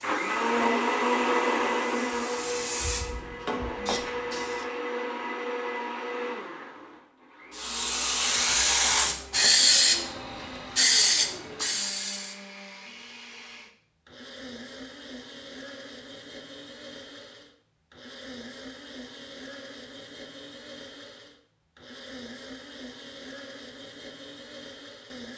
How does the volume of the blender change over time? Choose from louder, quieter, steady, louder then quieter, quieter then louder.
quieter.